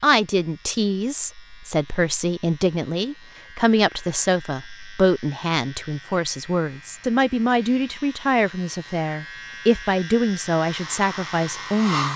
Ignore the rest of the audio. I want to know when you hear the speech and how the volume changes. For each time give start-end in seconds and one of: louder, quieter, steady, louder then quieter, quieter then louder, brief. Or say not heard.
0.0-12.1 steady.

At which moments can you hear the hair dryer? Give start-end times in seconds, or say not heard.
10.6-12.1.